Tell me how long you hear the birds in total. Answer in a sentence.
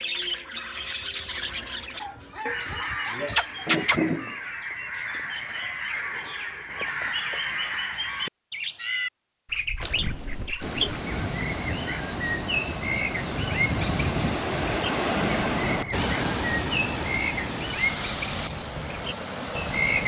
The birds can be heard for 20 seconds in total.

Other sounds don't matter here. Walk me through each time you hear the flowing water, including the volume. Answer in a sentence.
The flowing water can be heard from 9.8 to 20.0 s, getting louder then quieter.